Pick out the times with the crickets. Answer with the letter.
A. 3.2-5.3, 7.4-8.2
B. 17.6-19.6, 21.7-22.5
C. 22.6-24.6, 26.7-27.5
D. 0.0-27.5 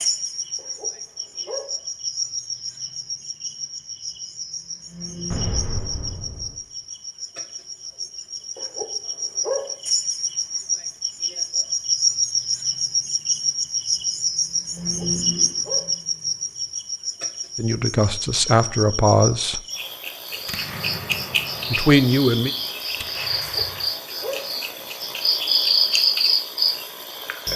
D.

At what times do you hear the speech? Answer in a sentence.
The speech can be heard from 17.6 to 19.6 s and from 21.7 to 22.5 s.